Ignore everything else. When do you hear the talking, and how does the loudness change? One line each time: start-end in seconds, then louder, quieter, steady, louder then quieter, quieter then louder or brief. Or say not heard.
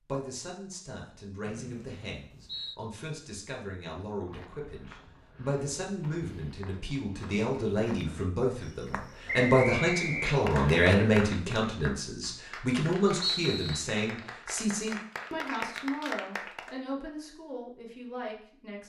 0.0-18.8 louder then quieter.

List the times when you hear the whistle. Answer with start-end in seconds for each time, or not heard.
1.4-2.8, 9.2-10.8, 13.2-13.8.